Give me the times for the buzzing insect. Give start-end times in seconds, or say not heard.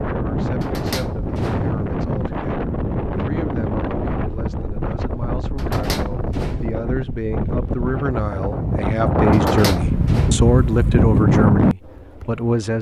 not heard.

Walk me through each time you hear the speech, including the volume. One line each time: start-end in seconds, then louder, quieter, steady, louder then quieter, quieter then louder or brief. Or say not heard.
0.1-12.7 louder.